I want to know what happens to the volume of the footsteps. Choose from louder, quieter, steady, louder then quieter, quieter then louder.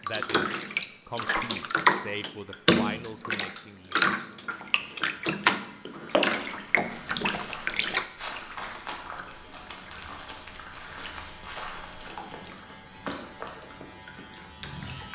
steady.